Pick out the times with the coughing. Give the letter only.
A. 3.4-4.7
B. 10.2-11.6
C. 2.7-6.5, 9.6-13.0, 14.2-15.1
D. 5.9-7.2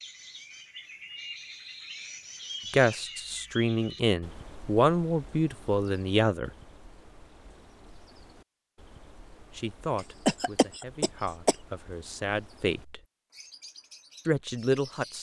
B.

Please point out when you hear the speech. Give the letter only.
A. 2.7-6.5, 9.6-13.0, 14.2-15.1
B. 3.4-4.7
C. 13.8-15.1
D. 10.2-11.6
A.